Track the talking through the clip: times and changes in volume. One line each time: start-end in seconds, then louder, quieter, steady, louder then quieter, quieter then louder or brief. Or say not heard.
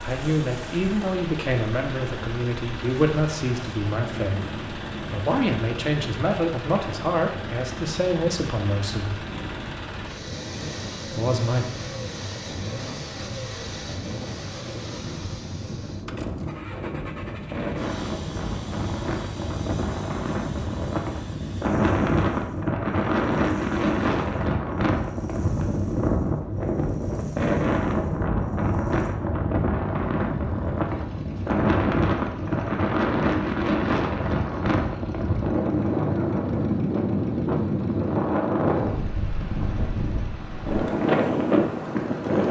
0.0-9.2 steady
11.1-11.7 brief.